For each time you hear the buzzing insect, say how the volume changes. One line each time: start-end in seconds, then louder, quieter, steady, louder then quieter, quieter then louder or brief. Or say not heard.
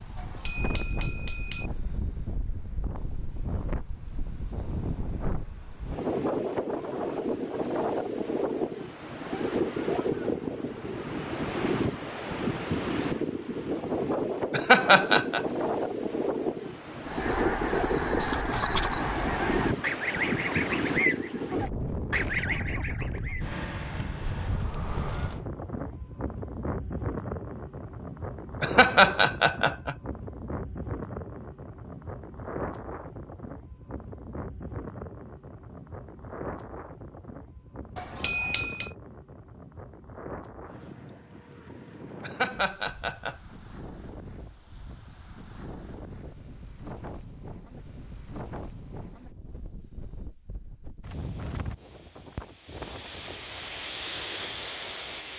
not heard.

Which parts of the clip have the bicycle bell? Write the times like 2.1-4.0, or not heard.
0.1-1.7, 38.0-39.0.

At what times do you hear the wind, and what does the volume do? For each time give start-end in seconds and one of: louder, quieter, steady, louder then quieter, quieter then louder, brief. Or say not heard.
0.0-55.3 quieter.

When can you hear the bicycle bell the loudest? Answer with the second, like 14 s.
38 s.